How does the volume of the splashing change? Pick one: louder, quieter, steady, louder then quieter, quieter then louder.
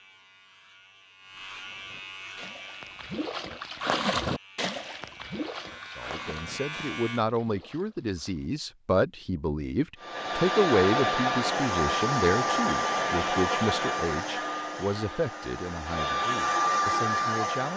louder then quieter.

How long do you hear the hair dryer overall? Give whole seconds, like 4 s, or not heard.
8 s.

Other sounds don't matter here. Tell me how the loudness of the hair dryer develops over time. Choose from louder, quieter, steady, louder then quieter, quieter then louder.
quieter then louder.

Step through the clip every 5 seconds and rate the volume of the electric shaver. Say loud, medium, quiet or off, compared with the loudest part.
medium, loud, off, off.